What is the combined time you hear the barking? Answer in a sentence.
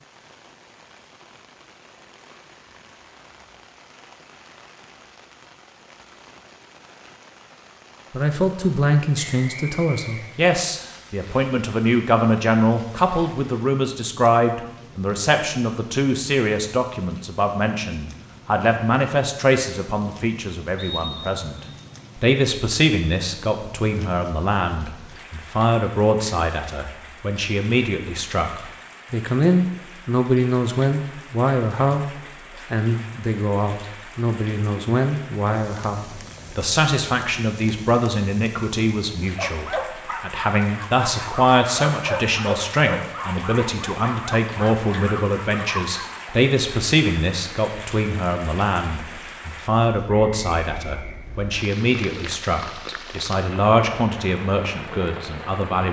The barking can be heard for 7 seconds in total.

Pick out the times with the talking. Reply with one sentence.
The talking can be heard from 8.1 to 21.6 s, from 22.1 to 32.0 s and from 32.7 to 55.8 s.